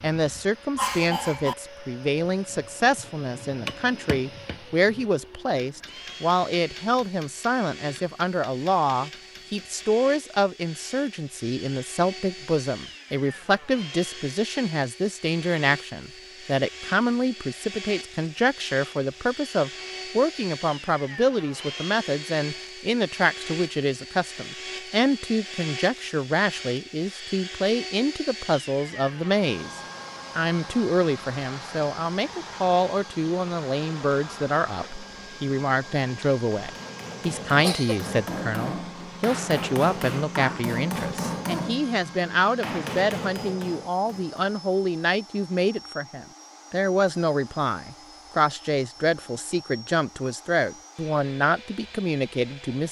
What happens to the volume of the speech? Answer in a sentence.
The loudness of the speech stays about the same.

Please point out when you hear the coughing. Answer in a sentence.
The coughing can be heard from 0.8 to 1.6 s and from 37.5 to 38.1 s.